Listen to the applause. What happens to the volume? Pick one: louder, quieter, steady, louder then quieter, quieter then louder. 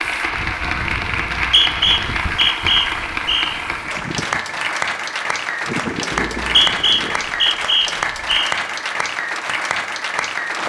steady.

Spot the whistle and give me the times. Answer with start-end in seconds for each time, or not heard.
1.3-3.6, 6.3-8.6.